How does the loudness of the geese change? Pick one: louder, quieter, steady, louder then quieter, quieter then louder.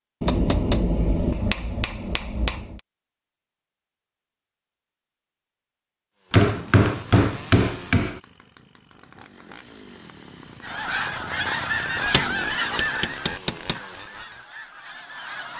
quieter.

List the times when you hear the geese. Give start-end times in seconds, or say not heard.
10.6-15.5.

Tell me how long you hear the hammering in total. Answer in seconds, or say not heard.
6 s.